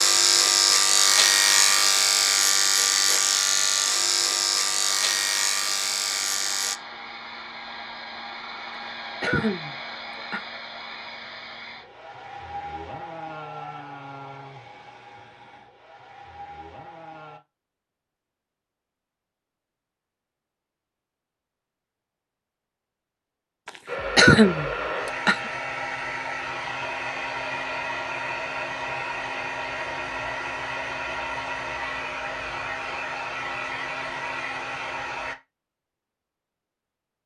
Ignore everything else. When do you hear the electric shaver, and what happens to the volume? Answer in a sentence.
The electric shaver can be heard from 0.0 to 6.8 s, getting quieter.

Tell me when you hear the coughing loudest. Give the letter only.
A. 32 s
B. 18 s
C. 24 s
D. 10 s
C.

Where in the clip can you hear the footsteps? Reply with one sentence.
The footsteps can't be heard in this clip.